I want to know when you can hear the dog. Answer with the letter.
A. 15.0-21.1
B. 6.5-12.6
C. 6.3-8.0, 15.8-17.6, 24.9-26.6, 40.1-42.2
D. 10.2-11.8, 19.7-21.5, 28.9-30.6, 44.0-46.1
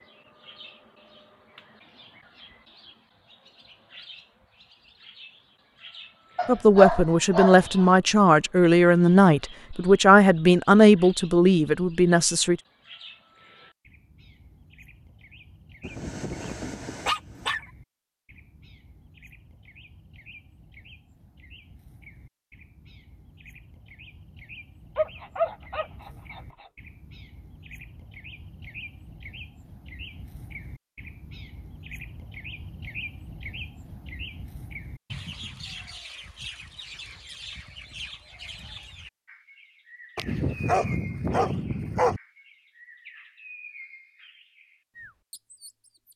C.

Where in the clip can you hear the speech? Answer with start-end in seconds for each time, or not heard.
6.5-12.6.